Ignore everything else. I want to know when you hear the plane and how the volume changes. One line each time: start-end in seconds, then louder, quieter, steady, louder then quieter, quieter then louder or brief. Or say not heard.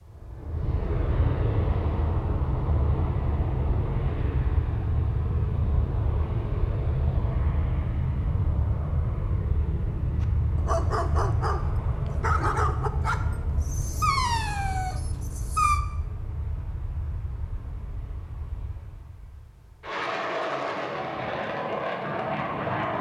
0.0-22.9 quieter then louder.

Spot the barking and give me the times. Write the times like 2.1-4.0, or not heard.
10.2-15.8.